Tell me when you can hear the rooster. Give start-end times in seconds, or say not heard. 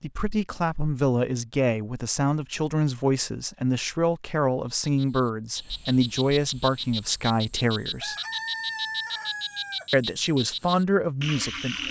8.0-9.8.